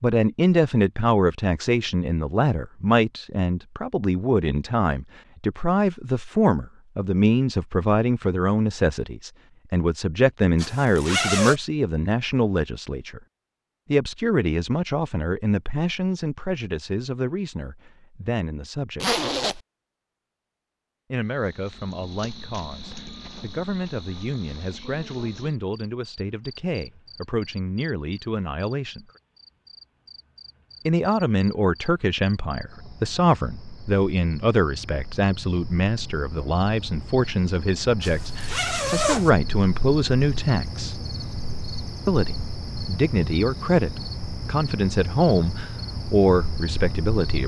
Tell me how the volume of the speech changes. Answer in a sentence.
The loudness of the speech goes down, then up.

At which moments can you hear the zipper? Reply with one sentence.
You can hear the zipper from 10.6 to 11.6 s, from 19.0 to 19.6 s and from 38.0 to 39.3 s.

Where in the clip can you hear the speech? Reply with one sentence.
The speech can be heard from 0.0 to 13.2 s, from 13.9 to 19.1 s, from 21.1 to 29.1 s, from 30.9 to 41.0 s and from 42.0 to 47.4 s.